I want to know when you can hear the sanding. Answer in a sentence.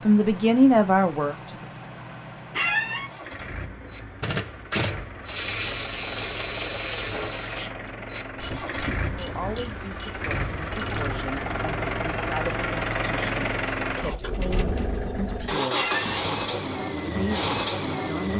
The sanding can't be heard in this clip.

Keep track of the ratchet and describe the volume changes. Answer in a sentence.
The loudness of the ratchet goes down.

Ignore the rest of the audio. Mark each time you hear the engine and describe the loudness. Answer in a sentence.
The engine can be heard from 0.0 to 18.3 s, getting louder.